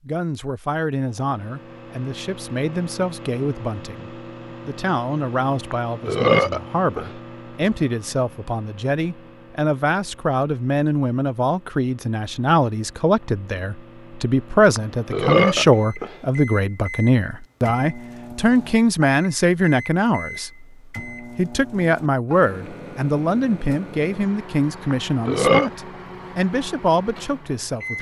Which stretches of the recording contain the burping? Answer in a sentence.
The burping can be heard from 5.7 to 7.1 s, from 14.8 to 16.1 s and from 24.9 to 25.7 s.